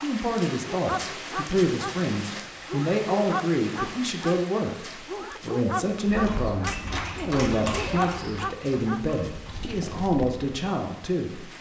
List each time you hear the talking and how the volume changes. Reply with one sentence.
You can hear the talking from 0.0 to 11.5 s, at a steady volume.